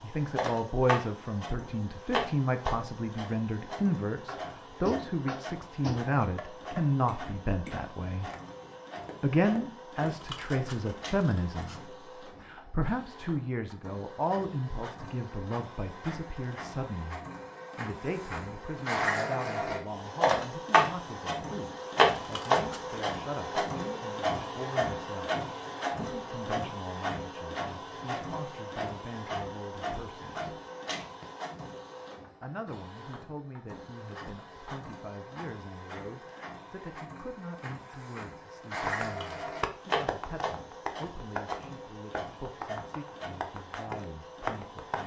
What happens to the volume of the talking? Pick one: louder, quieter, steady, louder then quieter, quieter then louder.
quieter.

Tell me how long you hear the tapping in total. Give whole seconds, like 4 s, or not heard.
12 s.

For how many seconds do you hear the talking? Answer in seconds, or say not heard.
42 s.